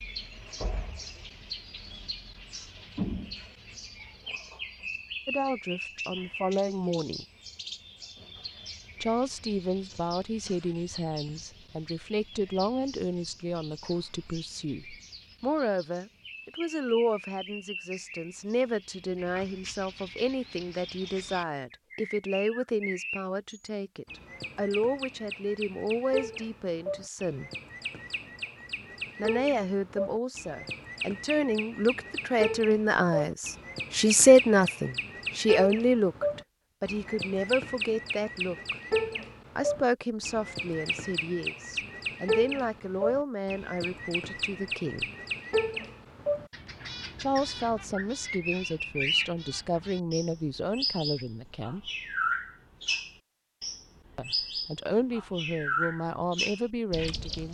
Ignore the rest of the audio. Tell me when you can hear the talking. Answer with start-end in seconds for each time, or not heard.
5.2-7.2, 9.0-27.5, 29.1-38.8, 39.5-45.1, 47.2-51.9, 54.1-57.4.